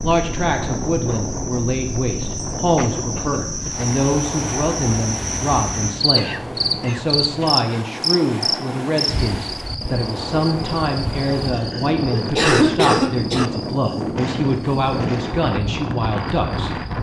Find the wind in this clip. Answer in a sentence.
The wind can be heard from 0.0 to 16.9 s.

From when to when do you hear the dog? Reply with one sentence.
You can't hear the dog here.